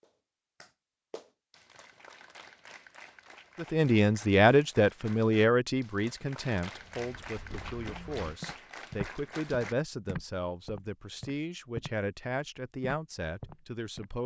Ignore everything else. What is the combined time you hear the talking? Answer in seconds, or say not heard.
11 s.